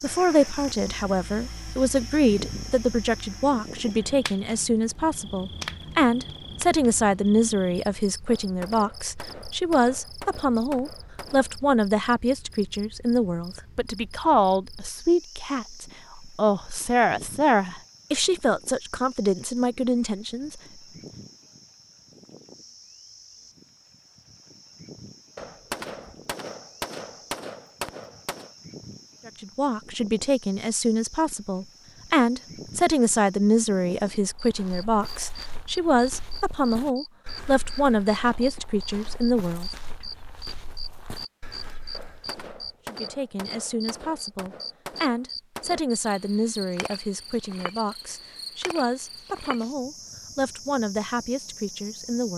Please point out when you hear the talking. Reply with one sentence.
The talking can be heard from 0.0 to 20.6 s, from 29.2 to 39.7 s and from 42.9 to 52.3 s.